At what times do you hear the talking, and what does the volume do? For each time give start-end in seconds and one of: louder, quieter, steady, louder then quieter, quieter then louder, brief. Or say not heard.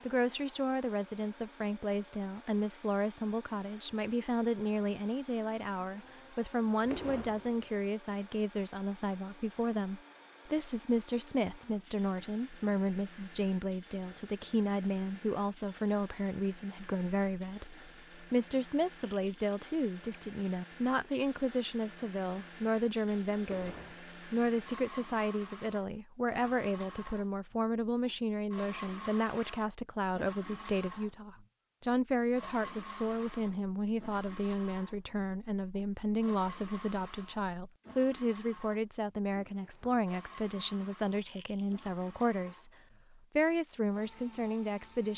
0.1-42.7 steady
43.4-45.1 brief.